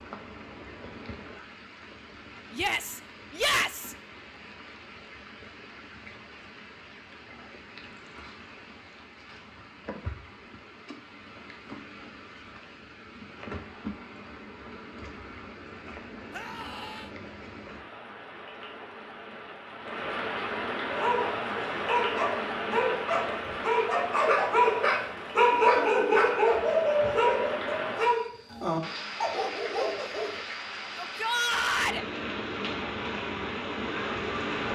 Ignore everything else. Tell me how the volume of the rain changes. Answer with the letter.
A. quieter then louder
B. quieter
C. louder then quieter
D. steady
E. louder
E.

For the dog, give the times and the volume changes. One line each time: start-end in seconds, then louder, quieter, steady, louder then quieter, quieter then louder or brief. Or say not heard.
20.9-30.4 louder then quieter.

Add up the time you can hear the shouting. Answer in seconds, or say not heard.
3 s.